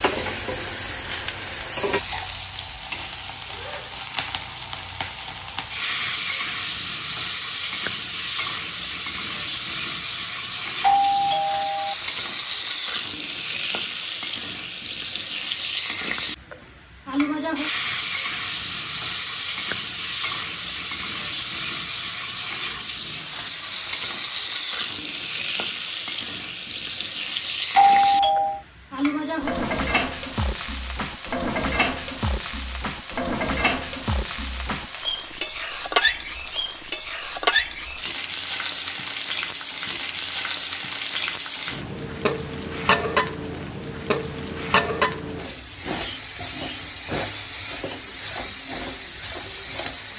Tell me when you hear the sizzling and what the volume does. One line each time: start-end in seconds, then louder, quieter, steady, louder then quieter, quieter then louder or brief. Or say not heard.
0.0-50.1 steady.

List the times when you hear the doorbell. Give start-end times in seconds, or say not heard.
10.8-11.9, 27.8-28.6.